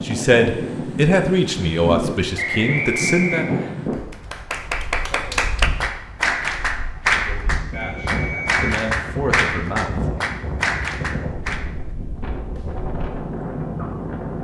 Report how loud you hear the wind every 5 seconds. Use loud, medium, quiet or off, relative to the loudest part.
loud, medium, loud.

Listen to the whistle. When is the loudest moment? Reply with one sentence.
The volume of the whistle peaks at 3 seconds.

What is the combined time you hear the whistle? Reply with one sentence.
The whistle can be heard for 2 seconds in total.